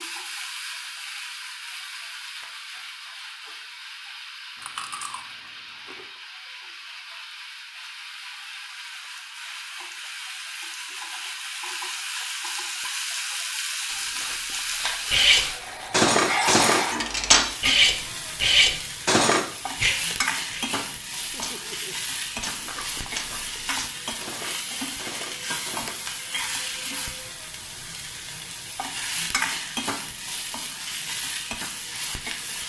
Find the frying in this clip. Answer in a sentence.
You can hear the frying from 0.0 to 32.6 s.